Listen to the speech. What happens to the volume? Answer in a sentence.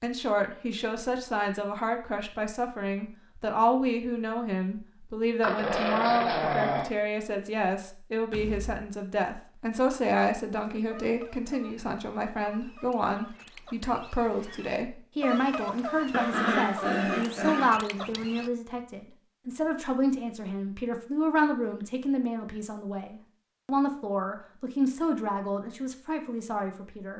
The loudness of the speech stays about the same.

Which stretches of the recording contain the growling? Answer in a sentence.
You can hear the growling from 5.4 to 6.9 s and from 16.1 to 17.7 s.